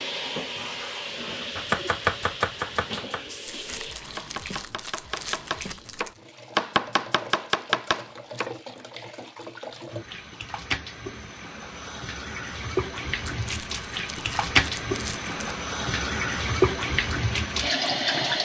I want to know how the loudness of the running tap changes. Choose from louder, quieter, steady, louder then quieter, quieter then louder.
quieter then louder.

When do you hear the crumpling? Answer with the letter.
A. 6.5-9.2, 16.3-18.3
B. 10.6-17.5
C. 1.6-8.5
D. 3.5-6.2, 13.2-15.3
D.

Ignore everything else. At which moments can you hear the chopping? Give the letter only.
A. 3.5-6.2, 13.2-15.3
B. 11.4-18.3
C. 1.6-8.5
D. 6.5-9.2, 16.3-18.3
C.